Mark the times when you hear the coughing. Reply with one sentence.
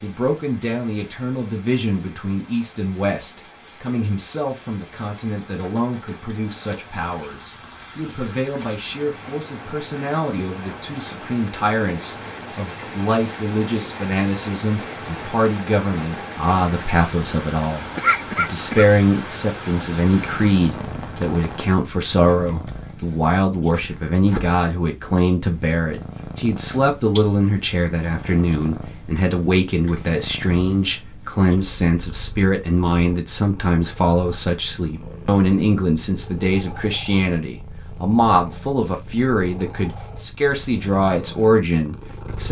You can hear the coughing from 17.9 to 18.9 s.